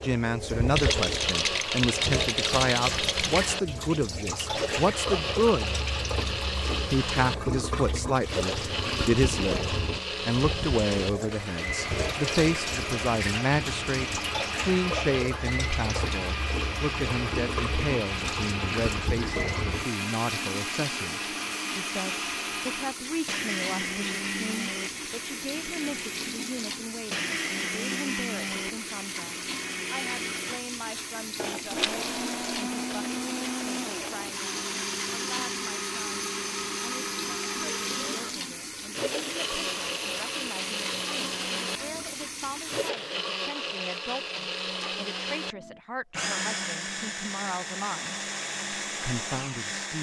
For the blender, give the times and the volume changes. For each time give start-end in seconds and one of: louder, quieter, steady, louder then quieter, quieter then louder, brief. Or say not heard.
0.0-49.9 steady.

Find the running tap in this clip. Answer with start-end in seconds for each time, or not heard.
0.0-42.9.